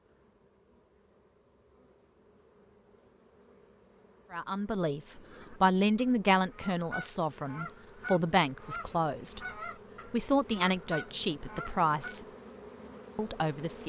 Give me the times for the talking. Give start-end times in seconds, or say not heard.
4.3-9.4, 10.1-12.2, 13.2-13.8.